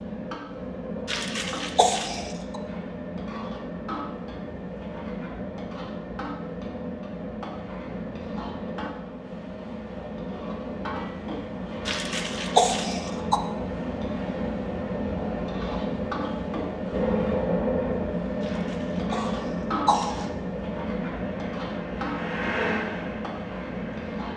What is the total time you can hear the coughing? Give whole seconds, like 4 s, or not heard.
5 s.